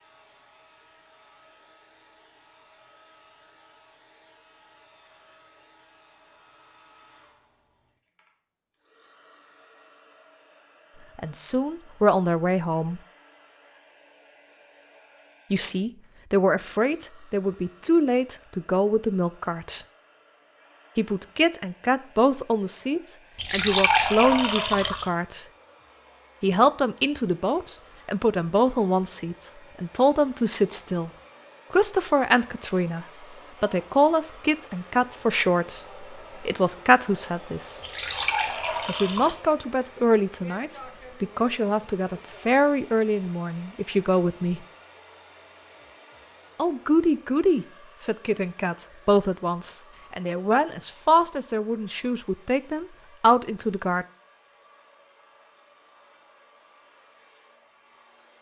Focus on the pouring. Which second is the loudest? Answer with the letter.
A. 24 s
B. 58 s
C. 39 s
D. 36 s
A.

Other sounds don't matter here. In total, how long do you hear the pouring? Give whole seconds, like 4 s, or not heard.
3 s.